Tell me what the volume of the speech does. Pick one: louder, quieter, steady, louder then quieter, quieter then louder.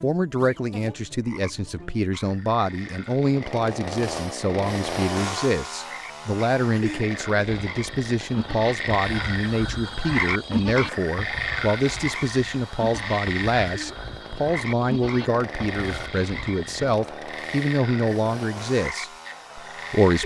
steady.